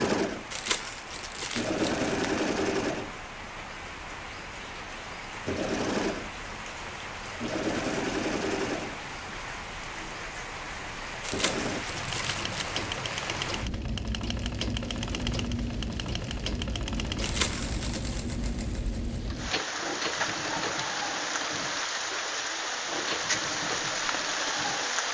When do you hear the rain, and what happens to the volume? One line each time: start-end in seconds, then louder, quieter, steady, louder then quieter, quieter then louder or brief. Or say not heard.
0.1-25.0 louder.